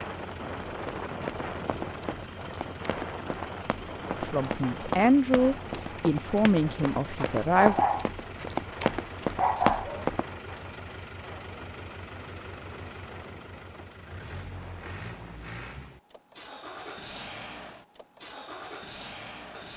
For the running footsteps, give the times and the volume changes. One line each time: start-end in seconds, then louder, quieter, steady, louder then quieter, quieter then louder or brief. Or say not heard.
0.7-10.2 louder.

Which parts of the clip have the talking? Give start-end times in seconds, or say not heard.
4.2-7.8.